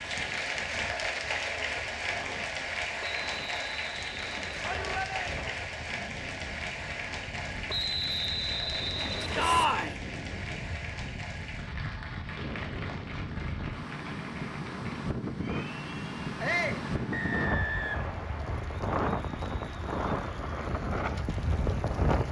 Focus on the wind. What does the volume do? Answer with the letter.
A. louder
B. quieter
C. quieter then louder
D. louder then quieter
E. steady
A.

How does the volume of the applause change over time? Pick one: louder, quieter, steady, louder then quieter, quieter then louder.
quieter.